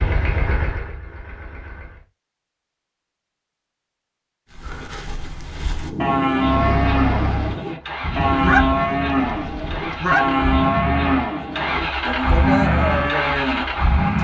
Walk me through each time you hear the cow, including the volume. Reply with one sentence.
You can hear the cow from 4.5 to 14.2 s, at a steady volume.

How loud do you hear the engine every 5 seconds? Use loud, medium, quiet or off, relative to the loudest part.
medium, medium, loud.